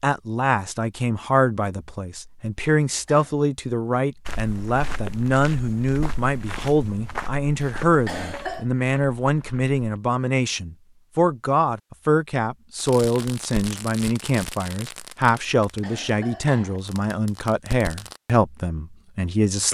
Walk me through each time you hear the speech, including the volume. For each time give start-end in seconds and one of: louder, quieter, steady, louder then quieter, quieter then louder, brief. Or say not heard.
0.0-19.6 steady.